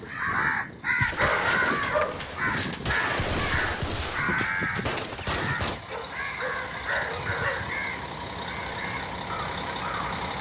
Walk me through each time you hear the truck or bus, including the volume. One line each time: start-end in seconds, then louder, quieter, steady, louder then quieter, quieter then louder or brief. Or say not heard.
0.0-10.3 louder.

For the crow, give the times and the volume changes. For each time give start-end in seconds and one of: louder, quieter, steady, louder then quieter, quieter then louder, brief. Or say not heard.
0.0-10.3 quieter.